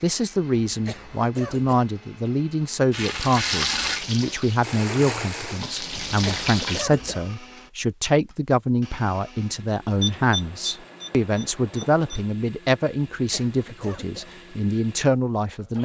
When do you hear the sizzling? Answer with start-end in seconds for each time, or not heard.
2.9-6.8.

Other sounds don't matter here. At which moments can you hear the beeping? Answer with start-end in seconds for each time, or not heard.
10.0-12.2.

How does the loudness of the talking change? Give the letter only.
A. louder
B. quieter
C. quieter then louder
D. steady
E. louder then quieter
D.